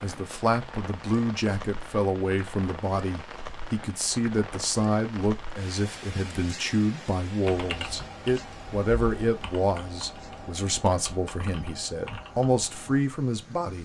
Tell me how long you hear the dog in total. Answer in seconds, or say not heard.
not heard.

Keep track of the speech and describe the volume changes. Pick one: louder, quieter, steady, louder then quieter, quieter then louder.
steady.